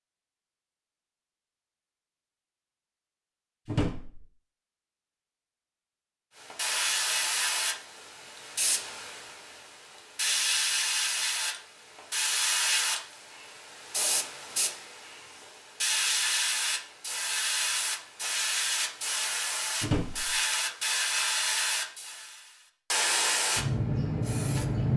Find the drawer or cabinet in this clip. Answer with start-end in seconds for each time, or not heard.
3.6-4.2, 19.8-20.4.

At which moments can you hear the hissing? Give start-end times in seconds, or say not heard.
6.4-24.9.